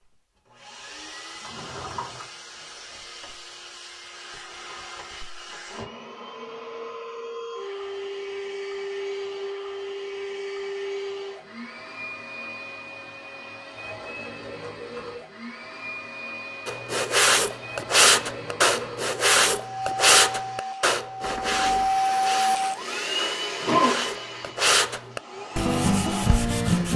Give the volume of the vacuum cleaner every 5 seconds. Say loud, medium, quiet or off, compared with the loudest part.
quiet, medium, medium, medium, loud, medium.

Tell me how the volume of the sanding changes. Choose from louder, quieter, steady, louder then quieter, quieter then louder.
quieter then louder.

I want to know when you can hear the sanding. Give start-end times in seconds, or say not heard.
16.6-26.9.